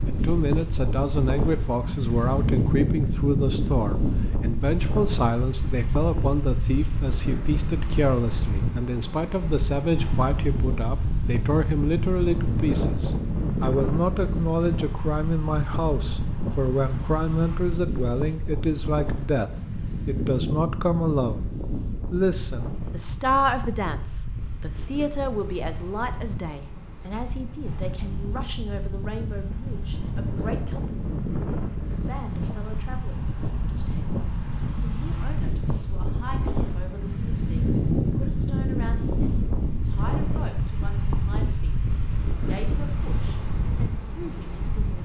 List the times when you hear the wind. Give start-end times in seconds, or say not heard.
0.0-45.0.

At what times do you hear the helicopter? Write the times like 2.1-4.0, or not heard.
not heard.